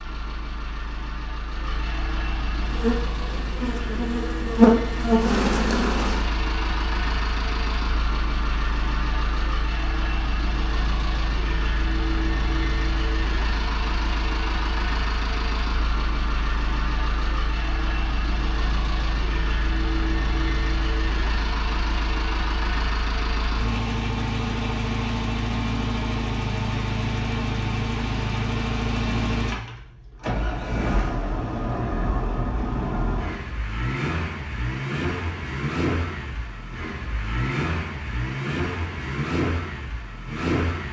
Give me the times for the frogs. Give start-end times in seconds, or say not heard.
not heard.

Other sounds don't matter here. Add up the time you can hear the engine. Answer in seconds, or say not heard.
41 s.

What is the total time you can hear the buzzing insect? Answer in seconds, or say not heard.
4 s.